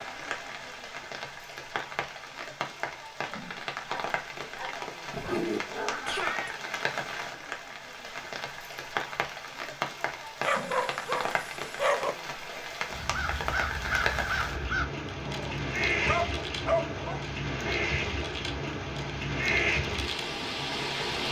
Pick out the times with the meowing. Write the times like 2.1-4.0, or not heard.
5.1-6.5.